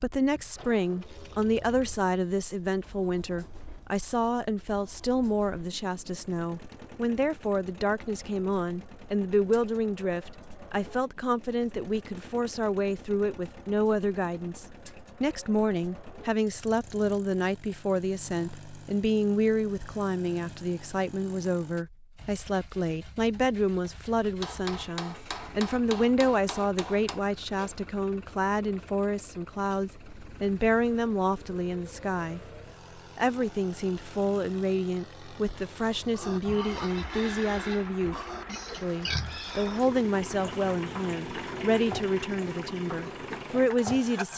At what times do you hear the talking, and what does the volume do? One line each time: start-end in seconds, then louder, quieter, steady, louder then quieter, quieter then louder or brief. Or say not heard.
0.0-44.3 steady.